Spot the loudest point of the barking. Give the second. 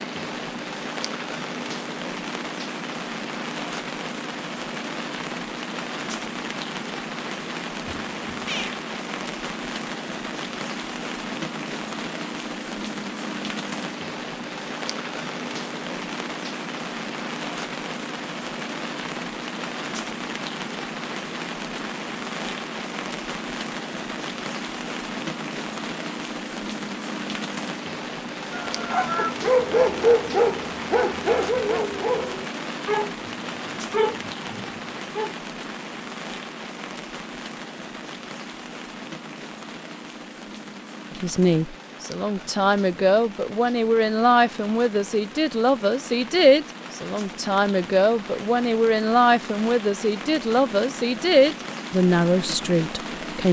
30 s.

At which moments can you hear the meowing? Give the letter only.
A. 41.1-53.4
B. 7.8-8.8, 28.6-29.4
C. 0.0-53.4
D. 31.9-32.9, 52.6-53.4
B.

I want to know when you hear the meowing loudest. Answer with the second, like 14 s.
29 s.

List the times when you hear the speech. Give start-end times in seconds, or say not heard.
41.1-53.4.